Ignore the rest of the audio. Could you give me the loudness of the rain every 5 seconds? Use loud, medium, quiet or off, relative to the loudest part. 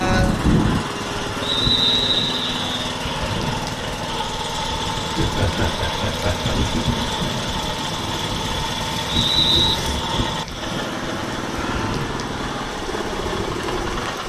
loud, loud, medium.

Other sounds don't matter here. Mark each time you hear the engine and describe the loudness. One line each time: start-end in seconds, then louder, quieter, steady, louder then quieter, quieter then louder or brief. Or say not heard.
0.0-14.2 steady.